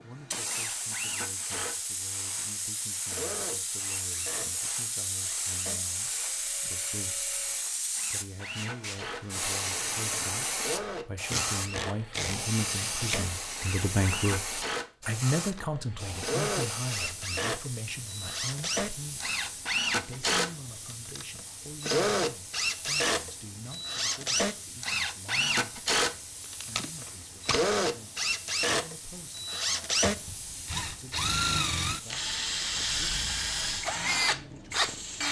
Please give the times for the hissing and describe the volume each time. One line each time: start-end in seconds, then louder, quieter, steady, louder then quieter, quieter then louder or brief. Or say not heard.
0.1-35.2 quieter.